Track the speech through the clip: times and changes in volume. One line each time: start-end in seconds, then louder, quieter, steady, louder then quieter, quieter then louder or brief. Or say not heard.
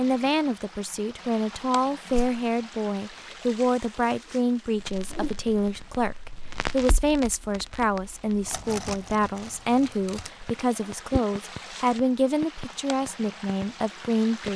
0.0-14.5 steady.